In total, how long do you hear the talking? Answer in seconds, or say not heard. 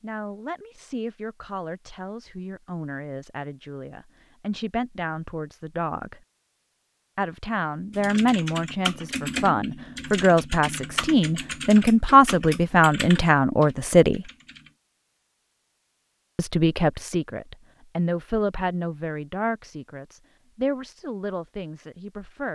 19 s.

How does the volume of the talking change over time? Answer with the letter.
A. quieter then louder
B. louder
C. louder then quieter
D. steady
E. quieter
C.